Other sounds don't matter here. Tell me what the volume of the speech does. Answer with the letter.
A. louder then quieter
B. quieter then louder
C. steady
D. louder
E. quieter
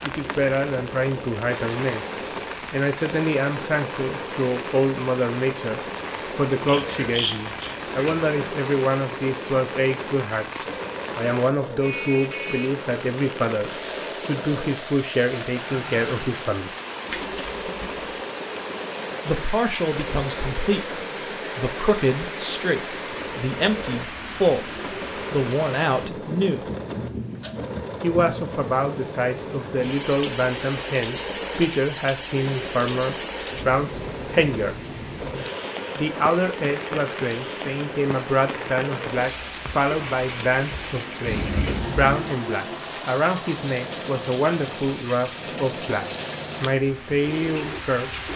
C.